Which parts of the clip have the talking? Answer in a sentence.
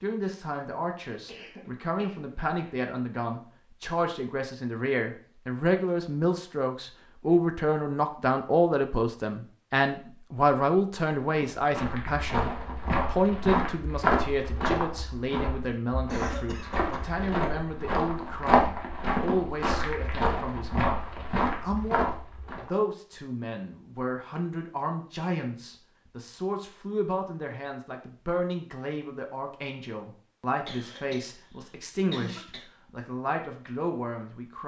You can hear the talking from 0.0 to 34.6 s.